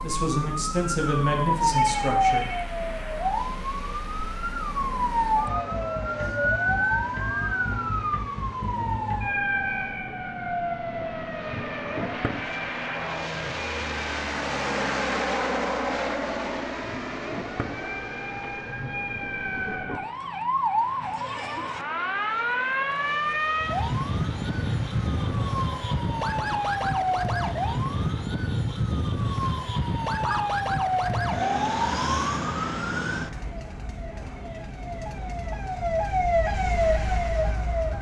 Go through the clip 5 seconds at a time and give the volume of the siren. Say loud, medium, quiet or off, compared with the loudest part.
loud, loud, medium, medium, loud, loud, loud, loud.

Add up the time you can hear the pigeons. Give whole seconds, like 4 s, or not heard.
not heard.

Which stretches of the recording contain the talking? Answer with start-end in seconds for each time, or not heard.
0.0-2.5.